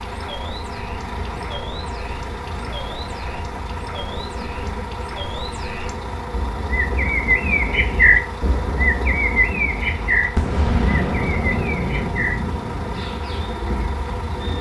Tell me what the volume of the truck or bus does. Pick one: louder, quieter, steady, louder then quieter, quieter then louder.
steady.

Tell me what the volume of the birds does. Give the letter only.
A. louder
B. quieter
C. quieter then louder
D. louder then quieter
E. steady
D.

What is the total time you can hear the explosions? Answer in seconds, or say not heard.
3 s.